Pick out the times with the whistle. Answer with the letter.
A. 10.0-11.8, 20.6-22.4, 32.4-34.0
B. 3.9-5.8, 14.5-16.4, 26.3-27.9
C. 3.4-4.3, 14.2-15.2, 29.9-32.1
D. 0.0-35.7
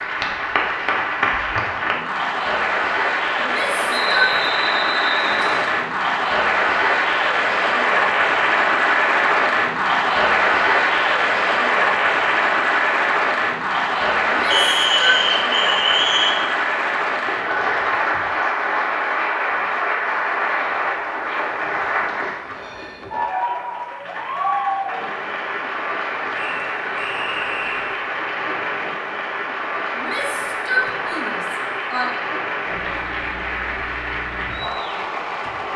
B.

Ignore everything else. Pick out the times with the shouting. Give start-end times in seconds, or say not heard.
3.4-4.3, 14.2-15.2, 29.9-32.1.